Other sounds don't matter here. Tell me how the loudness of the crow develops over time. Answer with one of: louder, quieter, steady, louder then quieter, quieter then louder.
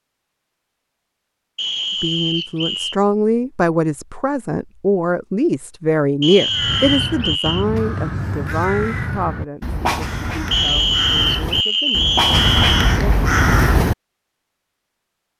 louder.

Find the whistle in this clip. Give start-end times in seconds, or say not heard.
1.6-3.0, 6.2-7.7, 10.5-13.0.